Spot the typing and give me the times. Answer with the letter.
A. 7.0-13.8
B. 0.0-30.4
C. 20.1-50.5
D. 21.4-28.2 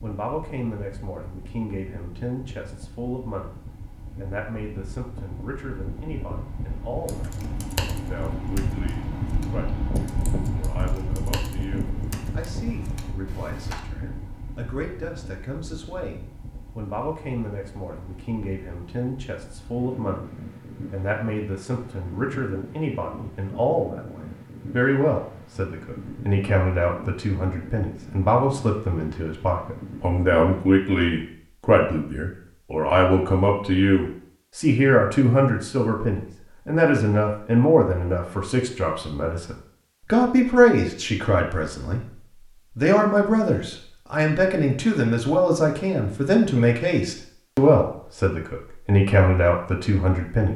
A.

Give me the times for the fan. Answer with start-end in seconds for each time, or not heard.
0.0-30.4.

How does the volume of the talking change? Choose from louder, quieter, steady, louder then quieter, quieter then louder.
louder.